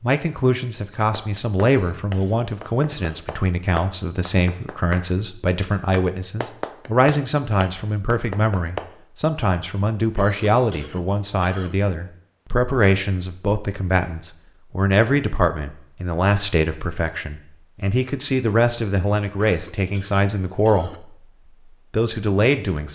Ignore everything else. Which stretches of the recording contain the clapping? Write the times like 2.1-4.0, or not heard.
1.1-8.9.